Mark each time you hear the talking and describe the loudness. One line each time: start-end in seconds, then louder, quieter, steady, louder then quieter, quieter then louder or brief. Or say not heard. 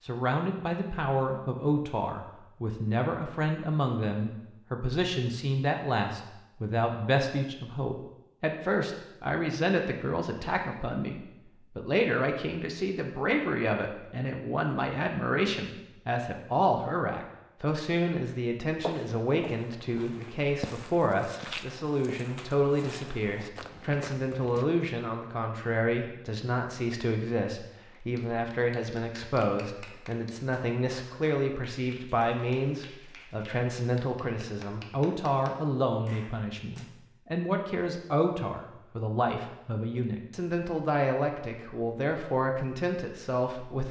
0.0-43.8 steady.